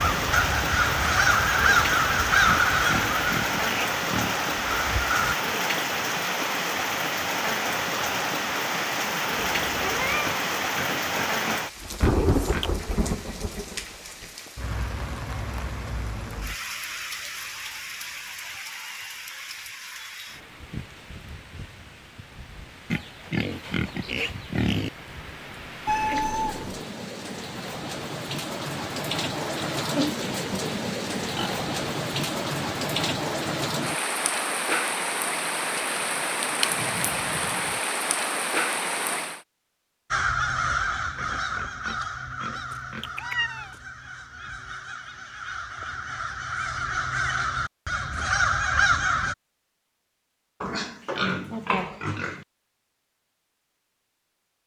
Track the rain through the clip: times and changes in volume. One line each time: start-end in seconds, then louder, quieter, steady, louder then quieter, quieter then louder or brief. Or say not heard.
0.0-39.4 quieter then louder.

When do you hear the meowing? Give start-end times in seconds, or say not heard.
9.3-10.3, 25.9-26.9, 42.7-43.8.